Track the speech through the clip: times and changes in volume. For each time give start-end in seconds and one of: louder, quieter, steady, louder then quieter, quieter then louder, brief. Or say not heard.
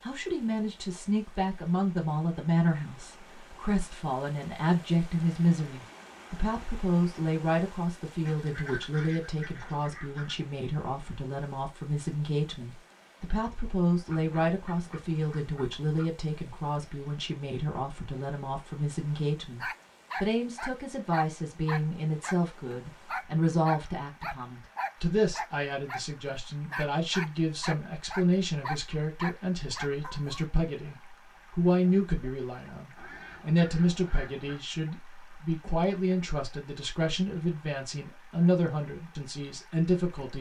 0.0-40.3 steady.